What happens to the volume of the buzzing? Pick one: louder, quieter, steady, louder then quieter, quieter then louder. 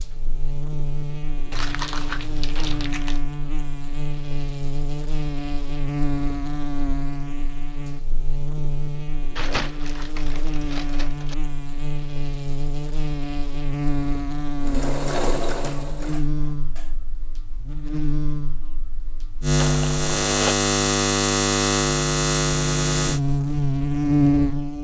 louder.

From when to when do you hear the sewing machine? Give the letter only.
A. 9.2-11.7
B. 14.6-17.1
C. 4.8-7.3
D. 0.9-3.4
B.